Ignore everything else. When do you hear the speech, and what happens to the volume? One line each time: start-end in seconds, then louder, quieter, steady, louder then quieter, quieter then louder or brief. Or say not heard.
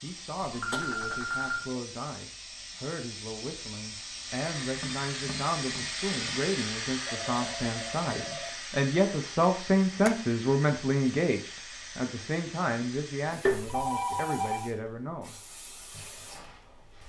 0.0-15.3 louder then quieter.